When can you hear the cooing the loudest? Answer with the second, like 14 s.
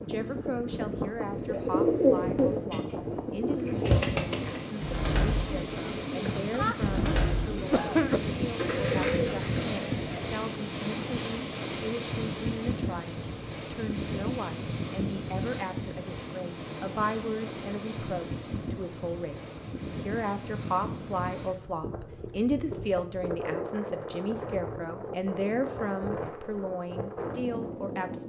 2 s.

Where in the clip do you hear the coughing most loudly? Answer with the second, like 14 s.
8 s.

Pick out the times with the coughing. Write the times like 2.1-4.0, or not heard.
6.2-8.2.